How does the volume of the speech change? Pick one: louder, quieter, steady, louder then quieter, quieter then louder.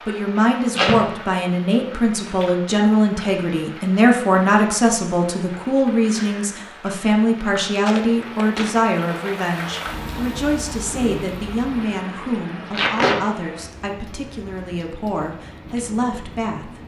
quieter.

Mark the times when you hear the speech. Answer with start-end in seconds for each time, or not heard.
0.0-16.8.